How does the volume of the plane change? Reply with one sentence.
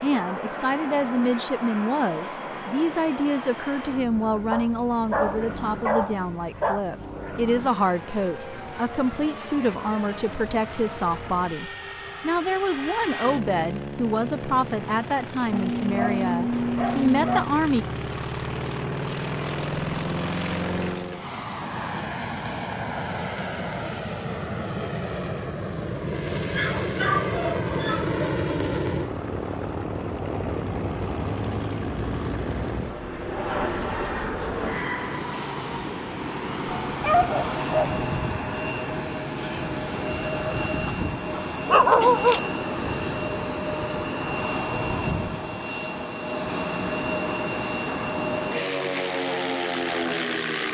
The volume of the plane goes up.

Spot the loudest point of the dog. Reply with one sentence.
The loudest moment of the dog is at 42 seconds.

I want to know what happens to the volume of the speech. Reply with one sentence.
The loudness of the speech stays about the same.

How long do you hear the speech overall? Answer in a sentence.
The speech can be heard for 18 seconds in total.